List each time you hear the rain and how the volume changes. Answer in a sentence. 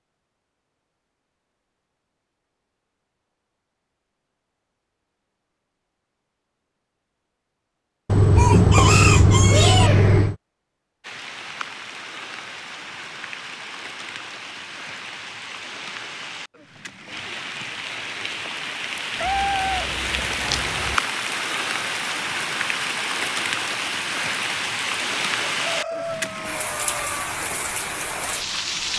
You can hear the rain from 11.0 to 28.9 s, getting louder.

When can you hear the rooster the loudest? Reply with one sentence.
The loudest moment of the rooster is at 9 seconds.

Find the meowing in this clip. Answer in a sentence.
You can hear the meowing from 8.1 to 10.3 s and from 19.2 to 20.9 s.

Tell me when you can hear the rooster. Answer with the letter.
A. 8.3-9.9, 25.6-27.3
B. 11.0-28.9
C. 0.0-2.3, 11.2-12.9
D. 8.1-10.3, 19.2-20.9
A.